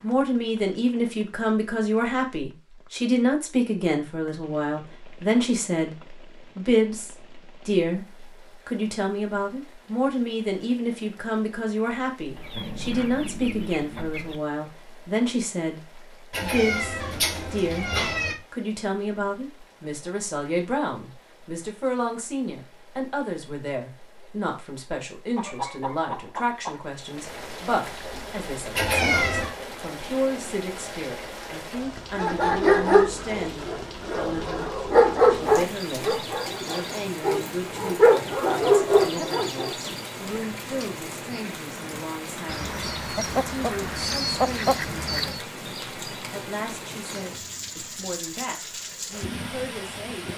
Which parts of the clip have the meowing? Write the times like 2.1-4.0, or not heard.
16.3-18.4, 28.8-29.5.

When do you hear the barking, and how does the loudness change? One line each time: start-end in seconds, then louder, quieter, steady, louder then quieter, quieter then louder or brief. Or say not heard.
32.1-39.7 quieter then louder.